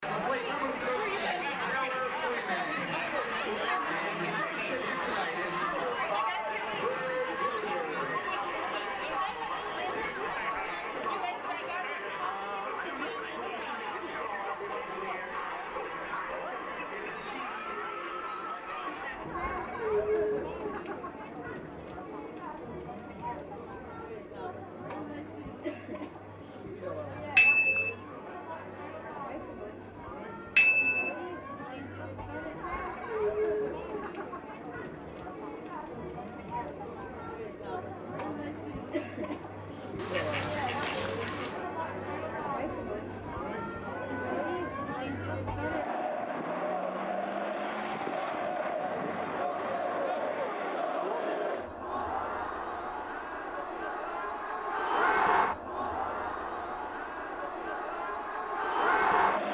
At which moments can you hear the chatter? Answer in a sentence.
You can hear the chatter from 0.0 to 59.4 s.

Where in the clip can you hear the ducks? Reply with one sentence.
You can hear the ducks from 40.0 to 41.6 s.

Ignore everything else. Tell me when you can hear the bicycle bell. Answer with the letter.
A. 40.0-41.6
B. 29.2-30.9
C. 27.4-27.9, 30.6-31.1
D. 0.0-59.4
C.